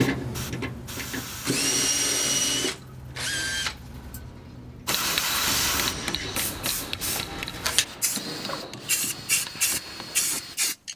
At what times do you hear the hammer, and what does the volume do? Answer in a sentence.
You can hear the hammer from 4.8 to 10.2 s, getting quieter.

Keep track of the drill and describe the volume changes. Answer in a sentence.
The loudness of the drill goes down.